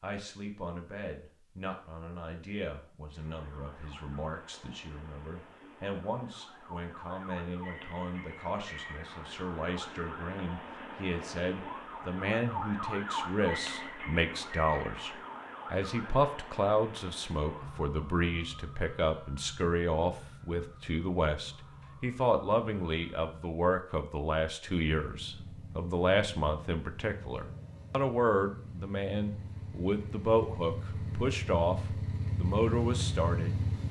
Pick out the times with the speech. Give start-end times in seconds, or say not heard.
0.0-33.5.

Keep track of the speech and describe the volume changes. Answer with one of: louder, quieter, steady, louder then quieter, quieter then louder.
louder.